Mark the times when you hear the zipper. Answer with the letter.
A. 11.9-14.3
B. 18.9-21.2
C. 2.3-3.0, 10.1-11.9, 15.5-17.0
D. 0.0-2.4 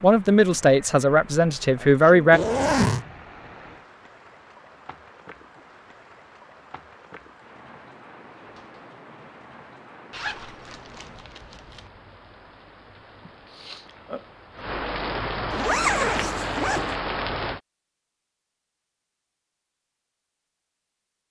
C.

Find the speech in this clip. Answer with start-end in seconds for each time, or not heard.
0.0-2.4.